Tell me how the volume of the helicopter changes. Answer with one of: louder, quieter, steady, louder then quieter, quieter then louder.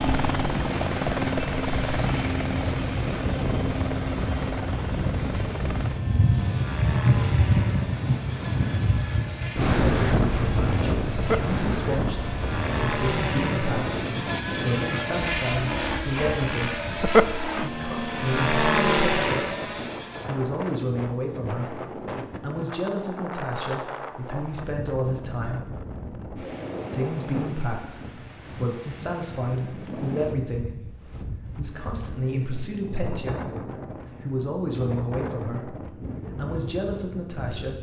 quieter then louder.